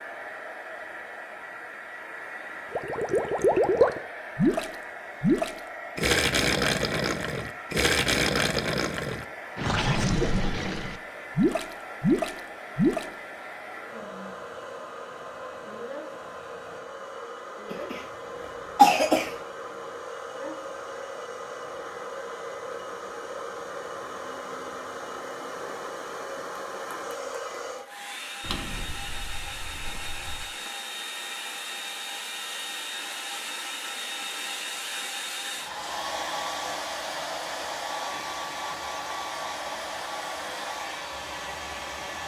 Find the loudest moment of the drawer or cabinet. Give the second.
29 s.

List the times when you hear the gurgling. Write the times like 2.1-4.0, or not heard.
2.7-13.1.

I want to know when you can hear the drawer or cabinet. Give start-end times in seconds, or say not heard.
28.4-30.4.